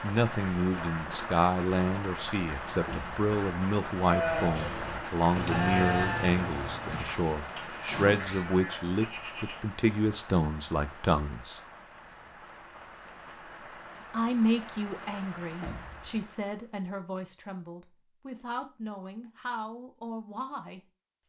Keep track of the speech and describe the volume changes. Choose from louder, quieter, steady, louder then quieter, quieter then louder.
quieter.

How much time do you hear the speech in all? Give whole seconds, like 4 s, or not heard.
19 s.